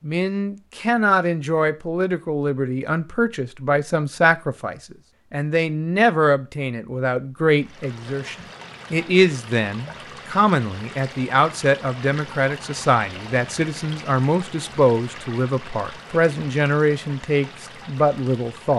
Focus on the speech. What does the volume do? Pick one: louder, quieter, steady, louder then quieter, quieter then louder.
steady.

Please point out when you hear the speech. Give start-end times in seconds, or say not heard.
0.0-18.7.